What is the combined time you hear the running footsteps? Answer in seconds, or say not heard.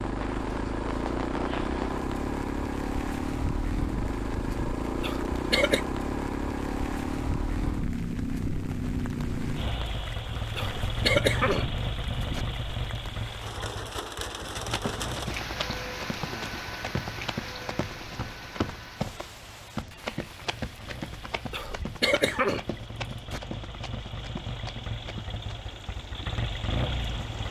11 s.